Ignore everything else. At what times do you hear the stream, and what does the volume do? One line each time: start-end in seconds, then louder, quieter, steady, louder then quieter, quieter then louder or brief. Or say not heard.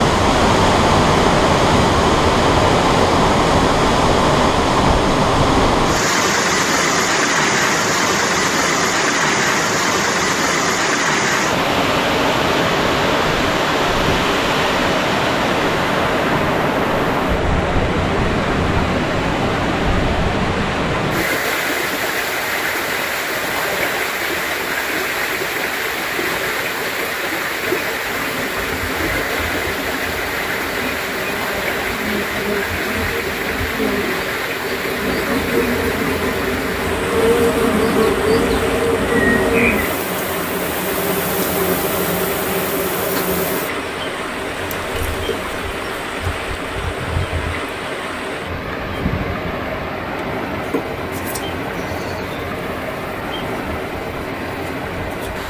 0.0-55.4 quieter.